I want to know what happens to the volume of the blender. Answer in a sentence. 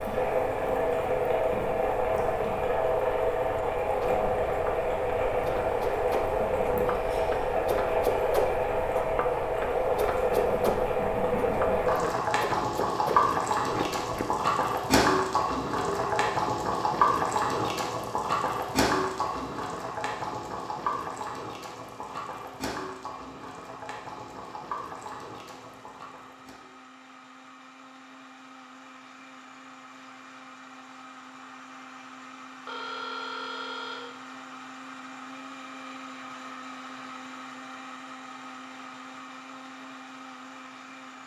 The loudness of the blender goes up.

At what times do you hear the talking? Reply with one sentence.
The talking can't be heard in this clip.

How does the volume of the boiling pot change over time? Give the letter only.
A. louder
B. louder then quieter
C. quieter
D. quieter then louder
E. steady
C.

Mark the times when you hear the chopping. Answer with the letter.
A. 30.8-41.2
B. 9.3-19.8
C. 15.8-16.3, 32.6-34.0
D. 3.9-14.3
D.